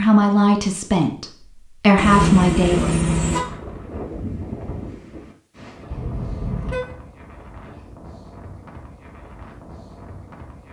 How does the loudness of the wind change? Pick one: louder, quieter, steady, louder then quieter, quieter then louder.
quieter.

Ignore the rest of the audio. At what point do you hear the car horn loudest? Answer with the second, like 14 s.
2 s.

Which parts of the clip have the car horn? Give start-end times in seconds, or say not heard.
1.9-3.5, 5.9-6.8.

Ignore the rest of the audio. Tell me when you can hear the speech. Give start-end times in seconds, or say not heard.
0.0-2.8.